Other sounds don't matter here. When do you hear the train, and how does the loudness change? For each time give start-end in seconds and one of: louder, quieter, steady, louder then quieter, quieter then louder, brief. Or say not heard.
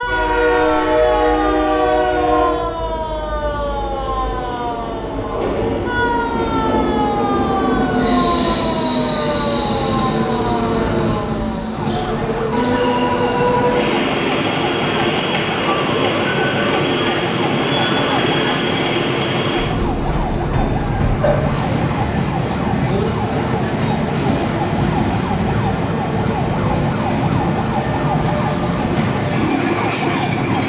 0.0-30.6 steady.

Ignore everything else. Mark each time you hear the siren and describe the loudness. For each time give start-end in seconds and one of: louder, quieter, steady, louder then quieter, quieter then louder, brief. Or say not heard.
0.0-30.6 steady.